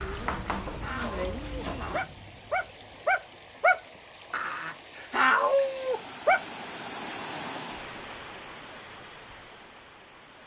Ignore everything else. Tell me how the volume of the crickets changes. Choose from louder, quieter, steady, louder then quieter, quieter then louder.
quieter.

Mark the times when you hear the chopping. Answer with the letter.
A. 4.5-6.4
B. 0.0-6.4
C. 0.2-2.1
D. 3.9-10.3
C.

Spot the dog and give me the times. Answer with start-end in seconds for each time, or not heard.
0.0-6.4.